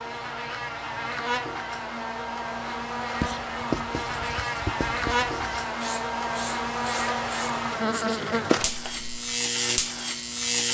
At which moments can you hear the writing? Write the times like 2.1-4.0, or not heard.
3.1-9.1.